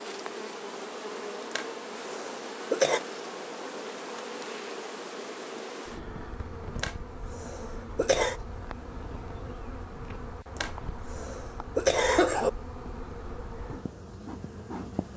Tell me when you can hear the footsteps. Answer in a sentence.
You can't hear the footsteps here.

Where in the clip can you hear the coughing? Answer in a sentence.
You can hear the coughing from 1.5 to 3.0 s, from 6.8 to 8.3 s and from 10.6 to 12.5 s.